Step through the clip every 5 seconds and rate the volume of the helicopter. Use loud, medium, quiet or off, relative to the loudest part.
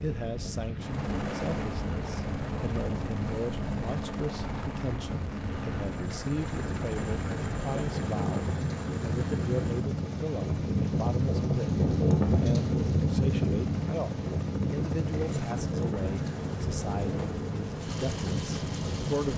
loud, loud, medium, loud.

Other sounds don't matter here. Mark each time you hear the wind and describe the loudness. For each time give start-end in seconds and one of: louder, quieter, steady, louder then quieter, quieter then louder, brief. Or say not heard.
0.0-19.3 louder then quieter.